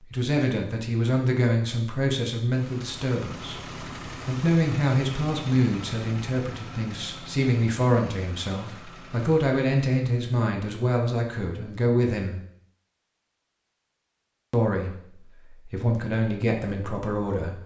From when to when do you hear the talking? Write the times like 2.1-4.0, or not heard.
0.0-12.4, 14.5-17.6.